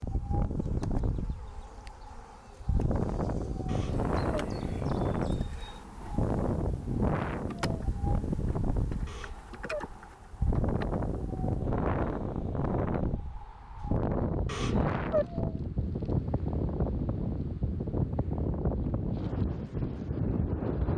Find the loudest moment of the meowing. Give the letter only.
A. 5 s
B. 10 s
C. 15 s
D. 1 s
C.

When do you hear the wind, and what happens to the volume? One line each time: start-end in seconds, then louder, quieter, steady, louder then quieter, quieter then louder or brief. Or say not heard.
0.0-20.9 steady.